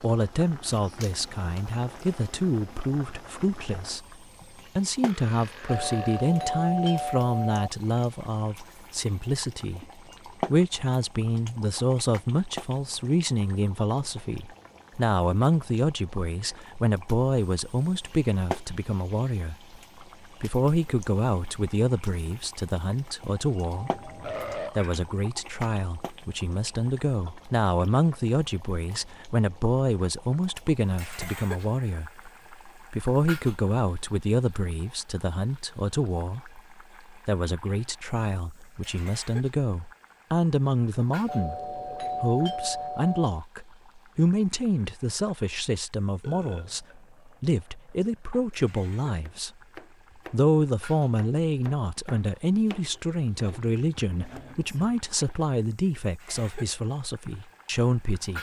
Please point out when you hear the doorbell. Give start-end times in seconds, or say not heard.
5.7-7.7, 23.7-24.7, 41.2-43.3.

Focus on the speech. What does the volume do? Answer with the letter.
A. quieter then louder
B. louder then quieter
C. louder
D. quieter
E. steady
E.